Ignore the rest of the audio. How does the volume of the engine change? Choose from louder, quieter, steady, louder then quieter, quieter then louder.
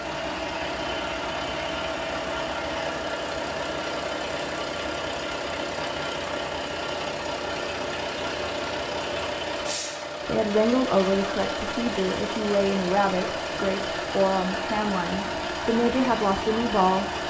steady.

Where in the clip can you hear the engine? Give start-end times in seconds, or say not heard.
0.0-17.2.